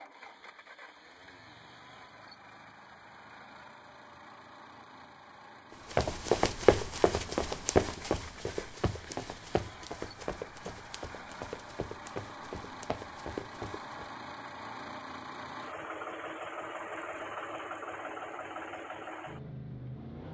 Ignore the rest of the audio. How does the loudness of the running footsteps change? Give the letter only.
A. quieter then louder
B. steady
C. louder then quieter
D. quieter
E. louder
D.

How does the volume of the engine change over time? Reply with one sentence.
The volume of the engine goes up.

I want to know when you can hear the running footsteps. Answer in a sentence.
You can hear the running footsteps from 5.9 to 14.1 s.